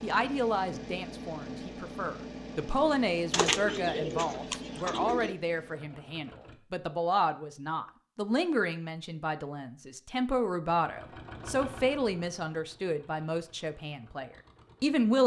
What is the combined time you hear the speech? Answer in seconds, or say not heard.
15 s.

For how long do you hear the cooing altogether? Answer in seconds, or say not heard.
2 s.